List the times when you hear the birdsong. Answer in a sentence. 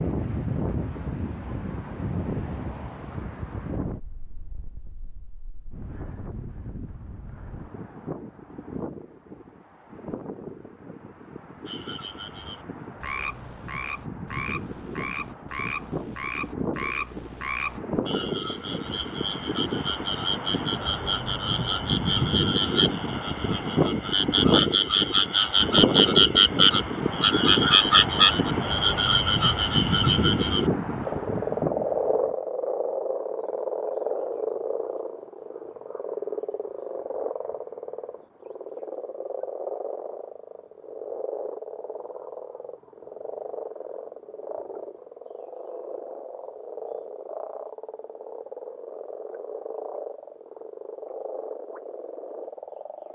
You can't hear the birdsong here.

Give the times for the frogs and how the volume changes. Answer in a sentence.
The frogs can be heard from 11.7 to 53.1 s, getting louder then quieter.